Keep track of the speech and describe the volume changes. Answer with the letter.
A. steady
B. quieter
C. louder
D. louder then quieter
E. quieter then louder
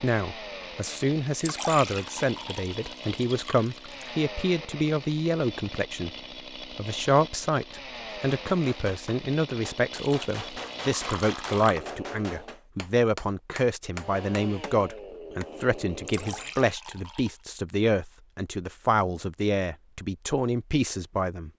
A.